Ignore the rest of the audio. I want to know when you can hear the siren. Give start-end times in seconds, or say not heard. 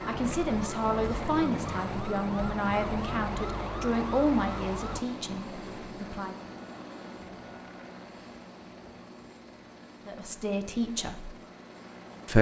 0.0-5.0.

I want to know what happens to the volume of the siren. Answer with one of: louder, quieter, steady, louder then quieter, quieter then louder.
steady.